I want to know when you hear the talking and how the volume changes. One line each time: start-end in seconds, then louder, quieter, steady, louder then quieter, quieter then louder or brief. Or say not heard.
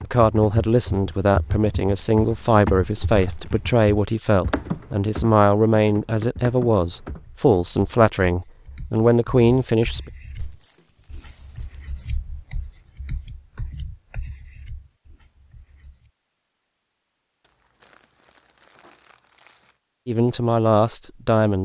0.0-10.1 steady
20.1-21.5 brief.